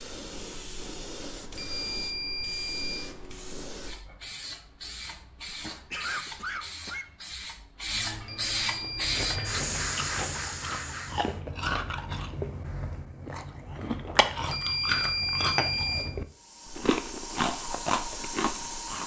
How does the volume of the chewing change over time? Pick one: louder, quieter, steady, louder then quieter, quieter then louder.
louder.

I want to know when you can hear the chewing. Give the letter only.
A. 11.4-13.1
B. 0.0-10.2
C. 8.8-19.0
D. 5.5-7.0
C.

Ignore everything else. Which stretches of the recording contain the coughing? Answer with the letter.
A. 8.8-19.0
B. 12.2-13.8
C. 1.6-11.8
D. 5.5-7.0
D.